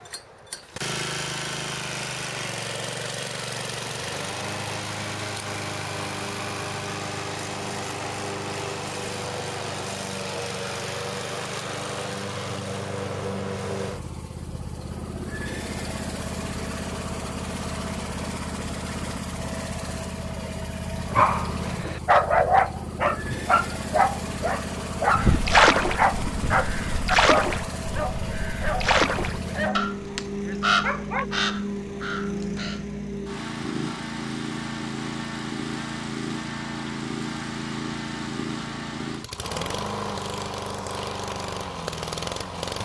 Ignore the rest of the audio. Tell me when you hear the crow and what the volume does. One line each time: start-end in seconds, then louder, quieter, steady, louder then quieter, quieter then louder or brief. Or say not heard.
25.1-32.9 quieter.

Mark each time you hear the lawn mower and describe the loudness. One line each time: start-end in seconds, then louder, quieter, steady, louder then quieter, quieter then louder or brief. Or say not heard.
0.0-42.8 steady.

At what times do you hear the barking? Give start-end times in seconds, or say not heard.
21.1-31.2.